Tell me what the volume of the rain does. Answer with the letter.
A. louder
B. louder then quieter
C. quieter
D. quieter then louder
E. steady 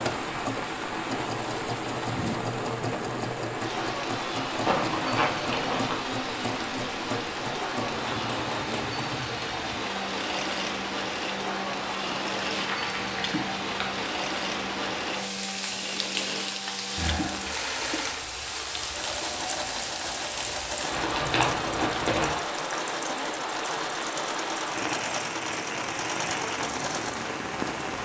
E.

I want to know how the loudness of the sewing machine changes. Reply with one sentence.
The volume of the sewing machine stays about the same.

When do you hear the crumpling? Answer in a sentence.
You can hear the crumpling from 4.7 to 6.0 s, from 12.5 to 14.1 s and from 20.9 to 22.4 s.